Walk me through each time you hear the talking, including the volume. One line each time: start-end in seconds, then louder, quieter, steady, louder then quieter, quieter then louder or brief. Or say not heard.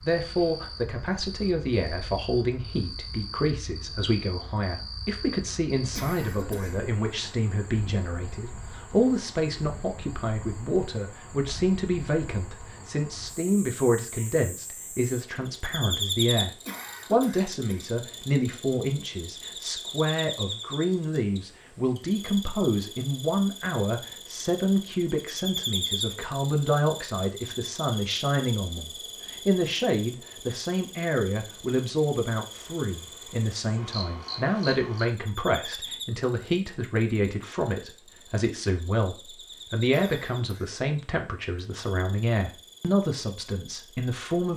0.0-44.5 steady.